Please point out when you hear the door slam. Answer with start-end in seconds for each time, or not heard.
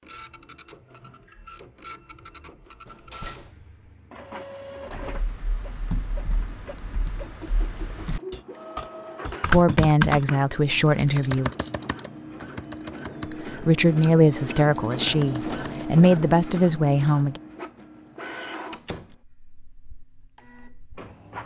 2.9-3.8, 18.7-19.1.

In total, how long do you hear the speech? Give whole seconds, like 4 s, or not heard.
6 s.